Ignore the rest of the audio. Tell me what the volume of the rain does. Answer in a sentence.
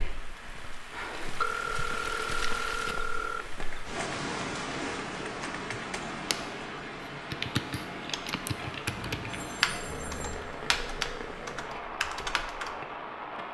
The volume of the rain stays about the same.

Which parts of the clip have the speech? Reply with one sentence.
You can't hear the speech here.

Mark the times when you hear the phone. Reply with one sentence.
You can hear the phone from 1.4 to 3.5 s and from 8.9 to 10.6 s.